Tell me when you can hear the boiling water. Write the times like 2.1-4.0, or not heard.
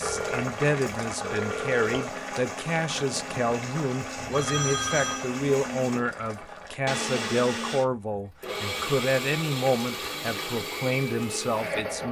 0.0-6.8.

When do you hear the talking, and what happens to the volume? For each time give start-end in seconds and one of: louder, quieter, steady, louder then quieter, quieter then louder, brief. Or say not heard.
0.0-12.0 steady.